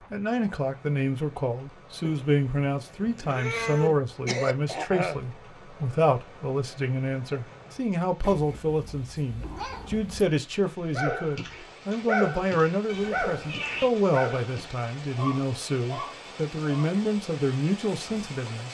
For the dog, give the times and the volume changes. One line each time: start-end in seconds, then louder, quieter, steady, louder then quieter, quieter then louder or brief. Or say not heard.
10.9-16.9 quieter.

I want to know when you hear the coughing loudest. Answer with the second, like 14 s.
5 s.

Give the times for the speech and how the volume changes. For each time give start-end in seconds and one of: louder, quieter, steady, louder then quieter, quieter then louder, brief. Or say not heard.
0.0-18.7 steady.